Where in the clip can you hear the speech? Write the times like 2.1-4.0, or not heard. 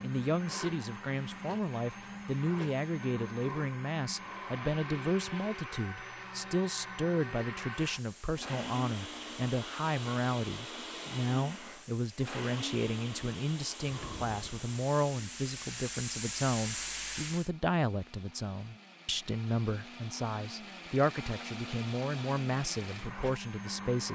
0.0-24.1.